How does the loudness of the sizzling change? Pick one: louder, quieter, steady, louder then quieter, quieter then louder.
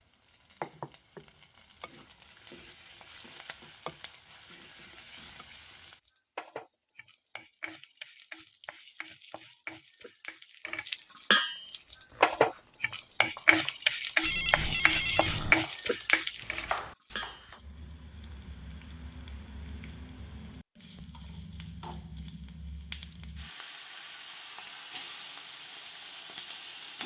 louder then quieter.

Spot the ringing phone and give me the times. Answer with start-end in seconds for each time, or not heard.
14.2-15.6.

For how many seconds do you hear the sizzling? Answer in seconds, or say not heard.
27 s.